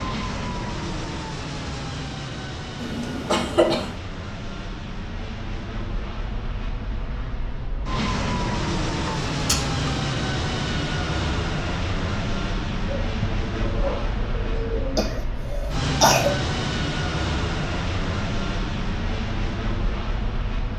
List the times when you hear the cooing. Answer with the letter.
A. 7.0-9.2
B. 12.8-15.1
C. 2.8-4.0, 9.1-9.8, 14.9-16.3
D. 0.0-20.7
B.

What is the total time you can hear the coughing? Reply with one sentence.
You can hear the coughing for 3 seconds altogether.